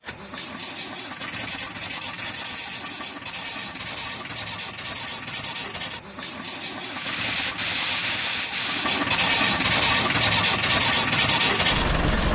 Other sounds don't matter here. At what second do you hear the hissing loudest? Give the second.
8 s.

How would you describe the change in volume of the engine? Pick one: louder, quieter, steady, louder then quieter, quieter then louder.
louder.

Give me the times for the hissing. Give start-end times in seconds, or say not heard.
6.8-12.3.